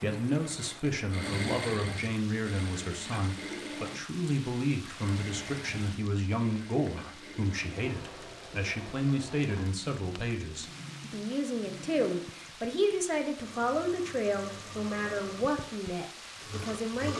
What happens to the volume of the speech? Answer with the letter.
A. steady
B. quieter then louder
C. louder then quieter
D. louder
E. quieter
A.